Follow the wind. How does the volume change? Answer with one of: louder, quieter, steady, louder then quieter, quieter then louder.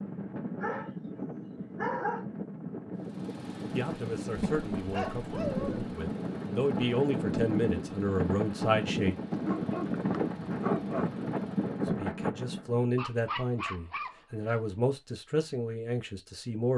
louder.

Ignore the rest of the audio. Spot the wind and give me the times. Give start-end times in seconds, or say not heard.
0.0-12.9.